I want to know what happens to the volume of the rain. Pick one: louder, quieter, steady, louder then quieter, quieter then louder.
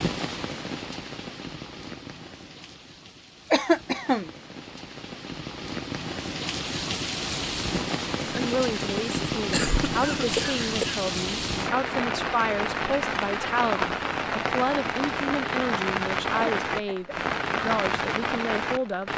louder.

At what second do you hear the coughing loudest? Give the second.
4 s.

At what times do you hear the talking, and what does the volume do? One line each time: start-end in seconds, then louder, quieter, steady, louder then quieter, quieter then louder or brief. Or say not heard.
8.3-19.1 steady.